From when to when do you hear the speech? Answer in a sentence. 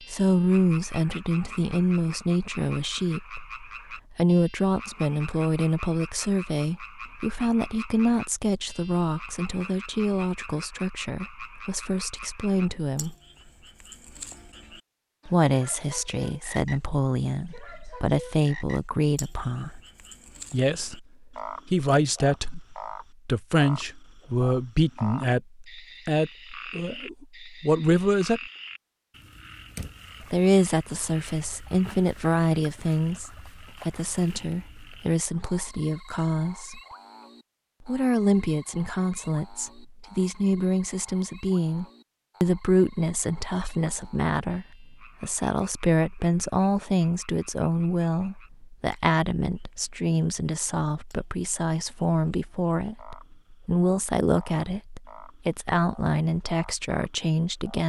The speech can be heard from 0.1 to 13.2 s, from 15.2 to 19.8 s, from 20.5 to 28.4 s, from 30.3 to 36.8 s and from 37.9 to 57.8 s.